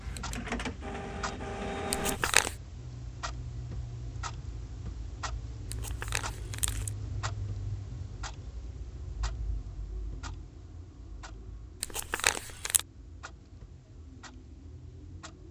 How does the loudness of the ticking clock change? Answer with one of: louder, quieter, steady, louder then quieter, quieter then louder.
quieter.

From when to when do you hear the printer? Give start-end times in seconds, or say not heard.
0.0-2.2.